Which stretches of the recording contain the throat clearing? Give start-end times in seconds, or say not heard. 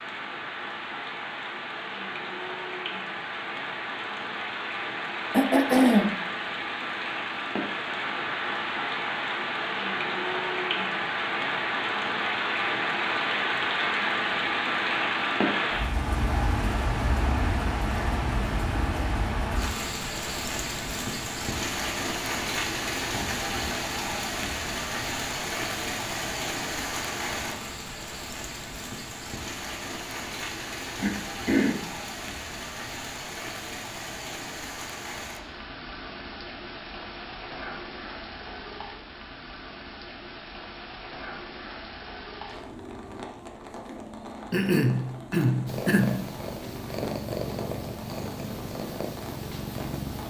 5.3-6.2, 31.0-31.8, 44.5-46.2.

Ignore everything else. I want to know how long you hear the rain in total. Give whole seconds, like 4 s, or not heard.
50 s.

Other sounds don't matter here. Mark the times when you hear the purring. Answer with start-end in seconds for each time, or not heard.
45.6-50.2.